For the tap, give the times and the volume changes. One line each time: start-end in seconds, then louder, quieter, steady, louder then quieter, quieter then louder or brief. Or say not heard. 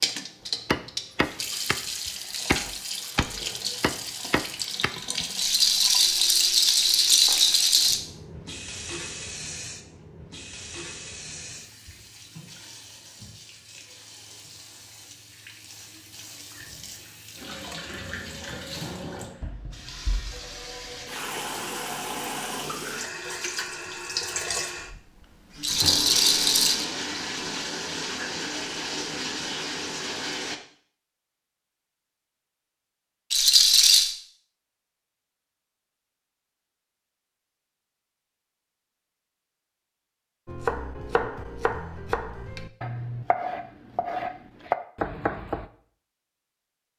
0.0-30.6 quieter then louder.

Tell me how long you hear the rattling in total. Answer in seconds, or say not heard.
5 s.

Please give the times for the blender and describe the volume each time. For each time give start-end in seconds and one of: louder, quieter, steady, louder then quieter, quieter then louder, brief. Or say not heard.
not heard.